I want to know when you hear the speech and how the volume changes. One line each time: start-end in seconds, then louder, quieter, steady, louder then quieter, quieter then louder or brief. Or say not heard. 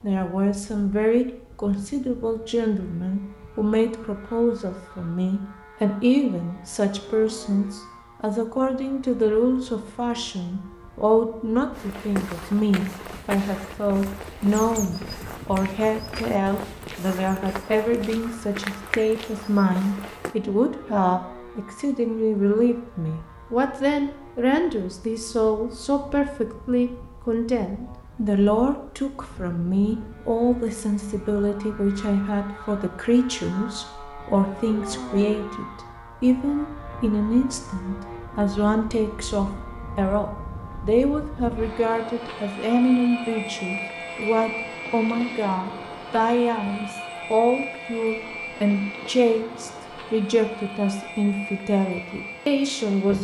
0.0-53.1 steady.